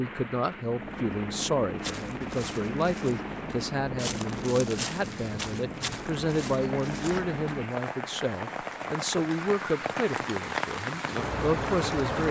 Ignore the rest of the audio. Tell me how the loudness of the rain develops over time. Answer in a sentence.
The volume of the rain goes up.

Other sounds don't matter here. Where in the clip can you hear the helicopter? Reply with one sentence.
You can hear the helicopter from 0.0 to 7.7 s.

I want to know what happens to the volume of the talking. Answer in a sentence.
The loudness of the talking stays about the same.